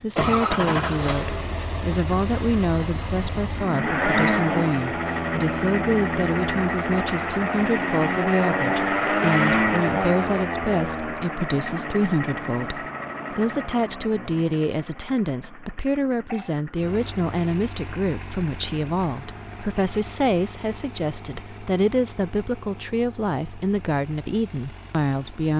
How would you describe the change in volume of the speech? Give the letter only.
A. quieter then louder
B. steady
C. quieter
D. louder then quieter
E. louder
B.